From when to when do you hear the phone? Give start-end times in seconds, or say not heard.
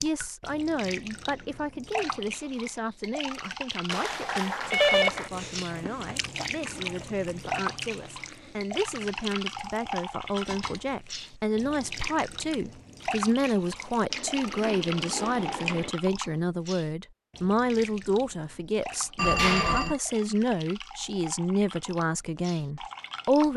3.9-5.3, 10.3-11.0, 19.1-19.9.